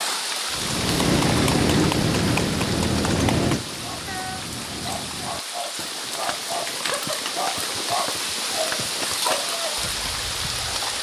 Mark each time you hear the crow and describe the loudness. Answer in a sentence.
The crow can't be heard in this clip.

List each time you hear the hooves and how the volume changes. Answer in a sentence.
The hooves can be heard from 0.5 to 10.9 s, getting quieter.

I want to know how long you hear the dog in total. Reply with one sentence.
The dog can be heard for 6 seconds in total.